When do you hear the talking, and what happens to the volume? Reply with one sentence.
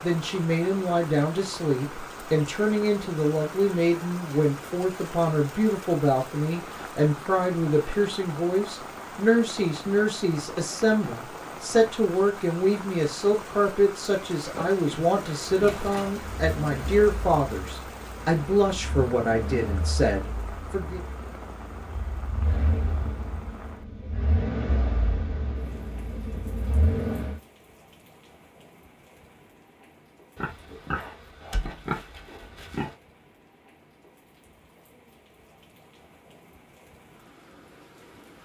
The talking can be heard from 0.0 to 21.0 s, at a steady volume.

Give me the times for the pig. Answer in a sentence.
The pig can be heard from 14.4 to 16.1 s and from 30.4 to 33.0 s.